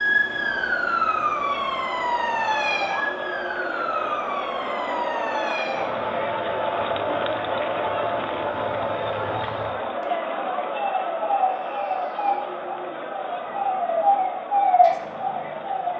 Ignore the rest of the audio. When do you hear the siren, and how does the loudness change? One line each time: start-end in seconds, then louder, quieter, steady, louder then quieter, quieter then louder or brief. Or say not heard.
0.0-15.9 quieter then louder.